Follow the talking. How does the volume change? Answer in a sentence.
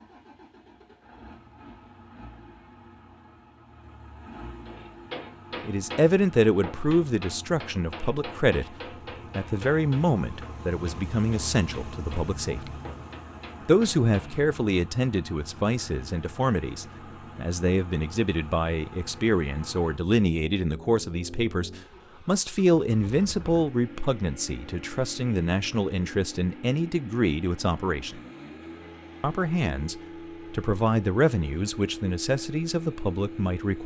The loudness of the talking stays about the same.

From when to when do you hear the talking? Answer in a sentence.
You can hear the talking from 5.6 to 8.8 s, from 9.3 to 12.7 s, from 13.7 to 28.2 s and from 29.2 to 33.8 s.